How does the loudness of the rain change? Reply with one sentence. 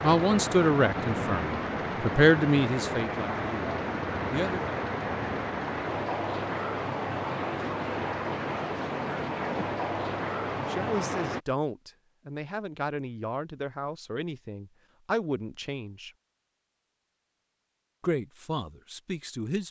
The loudness of the rain stays about the same.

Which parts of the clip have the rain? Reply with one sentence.
The rain can be heard from 0.0 to 11.4 s.